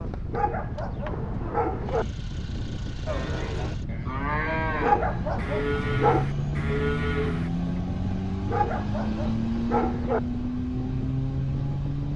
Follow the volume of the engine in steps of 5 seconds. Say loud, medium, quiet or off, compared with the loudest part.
medium, loud, loud.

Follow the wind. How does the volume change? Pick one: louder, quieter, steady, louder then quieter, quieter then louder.
steady.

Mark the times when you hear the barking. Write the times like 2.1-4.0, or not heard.
0.3-2.0, 4.8-6.3, 8.4-10.2.